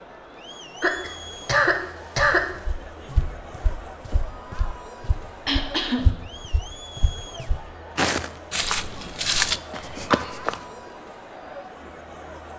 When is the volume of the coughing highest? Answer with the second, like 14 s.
2 s.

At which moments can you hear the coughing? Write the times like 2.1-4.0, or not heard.
0.8-2.5, 5.5-6.2, 9.6-10.4.